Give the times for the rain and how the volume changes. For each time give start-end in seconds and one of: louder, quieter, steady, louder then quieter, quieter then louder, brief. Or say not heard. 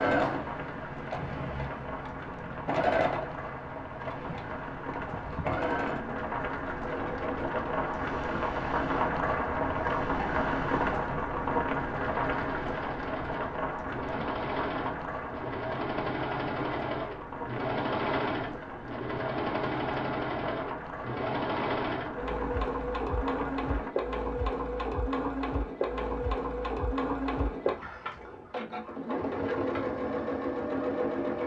0.2-23.9 louder then quieter.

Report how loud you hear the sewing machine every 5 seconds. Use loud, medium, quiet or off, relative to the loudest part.
loud, medium, medium, loud, loud, loud, loud.